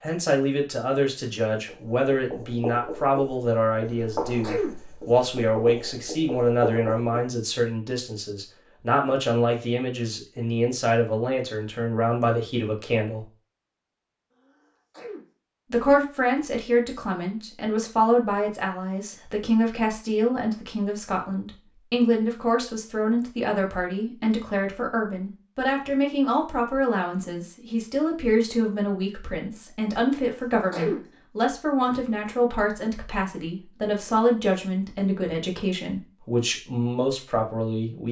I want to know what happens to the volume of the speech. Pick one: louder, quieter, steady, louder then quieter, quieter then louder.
steady.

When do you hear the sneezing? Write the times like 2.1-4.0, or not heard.
3.8-4.8, 14.3-15.2, 30.4-31.0.